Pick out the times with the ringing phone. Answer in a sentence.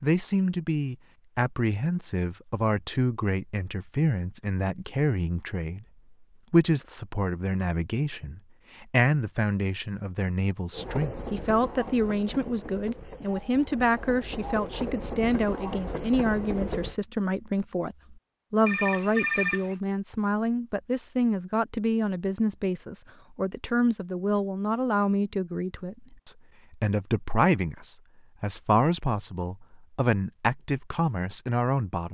The ringing phone can be heard from 18.6 to 19.8 s.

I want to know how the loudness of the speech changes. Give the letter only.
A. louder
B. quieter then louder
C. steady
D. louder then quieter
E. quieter
C.